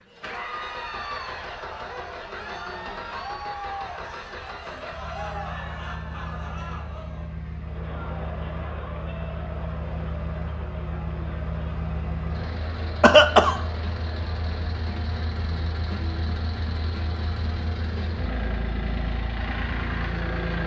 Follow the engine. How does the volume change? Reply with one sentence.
The volume of the engine goes up.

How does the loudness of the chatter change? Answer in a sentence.
The loudness of the chatter goes down.